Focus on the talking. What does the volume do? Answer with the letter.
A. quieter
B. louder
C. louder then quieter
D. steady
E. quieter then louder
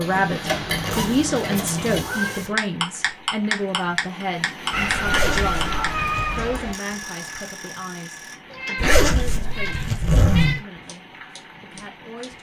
A.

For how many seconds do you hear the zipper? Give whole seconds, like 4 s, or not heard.
5 s.